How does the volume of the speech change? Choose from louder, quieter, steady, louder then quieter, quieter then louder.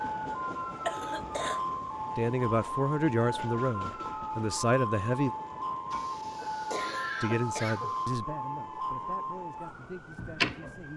quieter.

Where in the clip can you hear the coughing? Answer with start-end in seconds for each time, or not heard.
0.8-1.6, 5.9-8.1.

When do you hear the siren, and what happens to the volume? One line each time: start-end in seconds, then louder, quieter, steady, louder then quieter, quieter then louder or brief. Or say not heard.
0.0-10.9 steady.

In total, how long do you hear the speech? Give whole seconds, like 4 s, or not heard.
7 s.